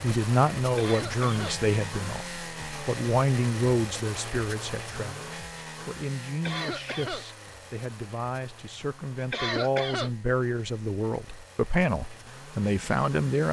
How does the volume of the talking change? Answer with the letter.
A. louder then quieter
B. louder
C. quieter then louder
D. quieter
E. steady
C.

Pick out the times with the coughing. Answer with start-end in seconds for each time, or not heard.
0.8-1.6, 6.4-7.2, 9.3-10.1.